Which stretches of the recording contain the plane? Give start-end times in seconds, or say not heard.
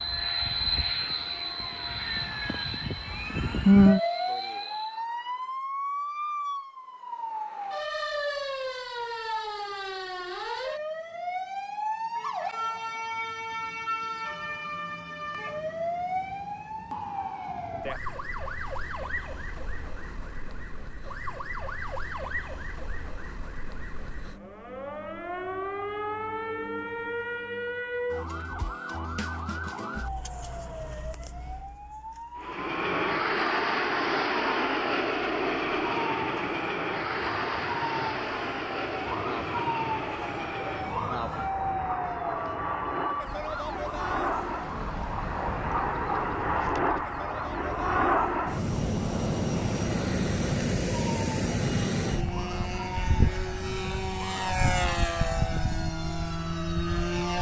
0.0-5.0, 32.4-57.3.